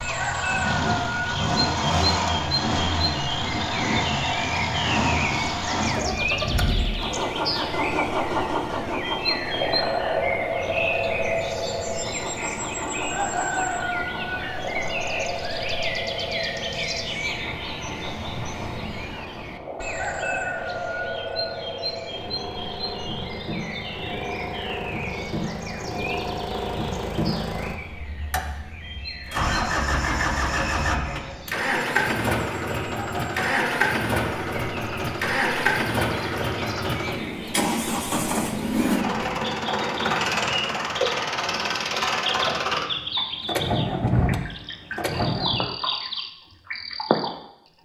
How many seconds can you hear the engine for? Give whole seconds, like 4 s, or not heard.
46 s.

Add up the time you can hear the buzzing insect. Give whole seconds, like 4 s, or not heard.
not heard.